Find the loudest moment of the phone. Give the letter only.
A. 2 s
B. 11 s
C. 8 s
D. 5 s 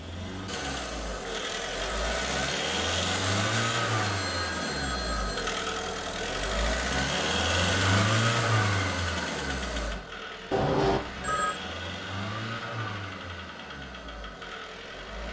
B.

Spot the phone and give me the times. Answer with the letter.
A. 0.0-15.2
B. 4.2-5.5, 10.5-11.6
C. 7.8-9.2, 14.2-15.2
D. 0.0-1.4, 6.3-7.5
B.